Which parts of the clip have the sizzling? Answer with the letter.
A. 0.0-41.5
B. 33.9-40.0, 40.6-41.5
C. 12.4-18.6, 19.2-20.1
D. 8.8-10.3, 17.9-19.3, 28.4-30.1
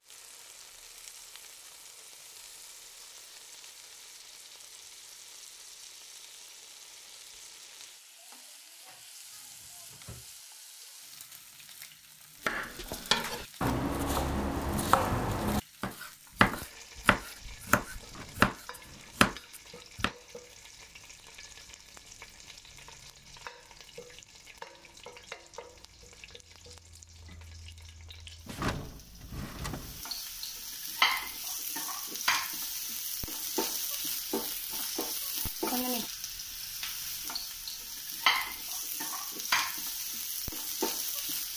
A.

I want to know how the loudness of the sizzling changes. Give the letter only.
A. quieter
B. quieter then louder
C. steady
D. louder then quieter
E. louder
E.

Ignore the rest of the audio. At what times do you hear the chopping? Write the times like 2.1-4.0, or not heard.
12.4-18.6, 19.2-20.1.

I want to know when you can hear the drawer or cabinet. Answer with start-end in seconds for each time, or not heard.
8.8-10.3, 17.9-19.3, 28.4-30.1.